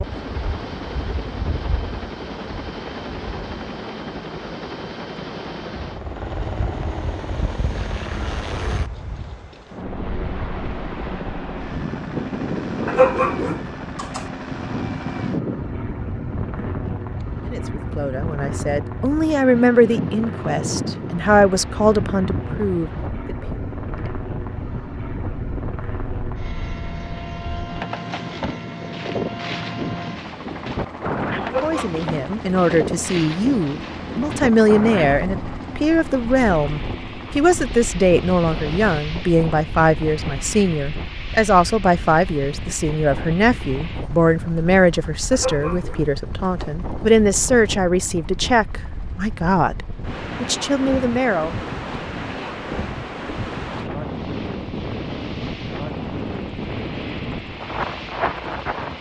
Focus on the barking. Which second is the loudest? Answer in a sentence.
The loudest moment of the barking is at 13 seconds.